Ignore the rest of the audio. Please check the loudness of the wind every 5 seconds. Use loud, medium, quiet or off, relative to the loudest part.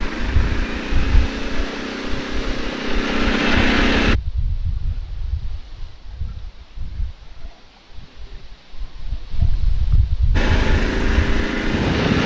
medium, quiet, loud.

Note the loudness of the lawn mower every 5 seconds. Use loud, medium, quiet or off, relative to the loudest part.
loud, off, loud.